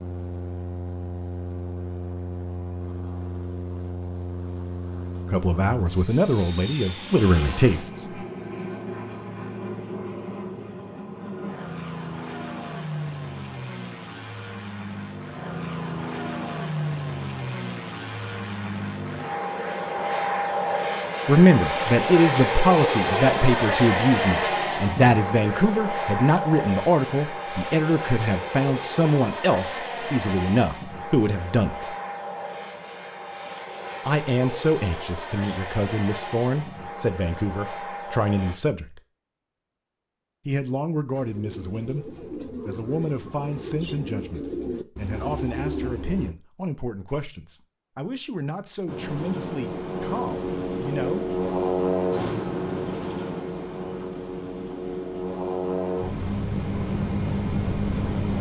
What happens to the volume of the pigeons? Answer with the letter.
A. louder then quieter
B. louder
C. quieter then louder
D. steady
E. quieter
B.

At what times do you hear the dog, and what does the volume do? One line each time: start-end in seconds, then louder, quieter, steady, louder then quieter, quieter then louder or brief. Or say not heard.
not heard.